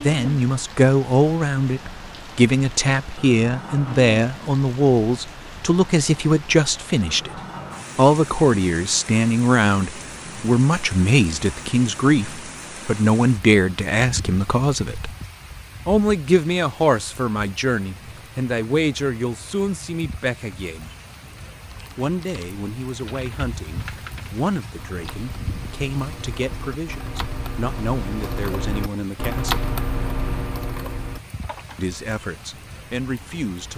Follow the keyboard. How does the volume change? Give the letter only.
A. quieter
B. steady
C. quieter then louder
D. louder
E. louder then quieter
D.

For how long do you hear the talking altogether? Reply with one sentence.
The talking can be heard for 29 seconds in total.